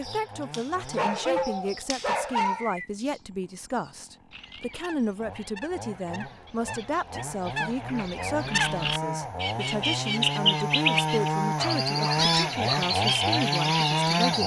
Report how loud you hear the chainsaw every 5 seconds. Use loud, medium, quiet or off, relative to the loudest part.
quiet, medium, loud.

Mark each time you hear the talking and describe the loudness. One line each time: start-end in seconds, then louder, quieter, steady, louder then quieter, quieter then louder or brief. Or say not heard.
0.0-14.4 steady.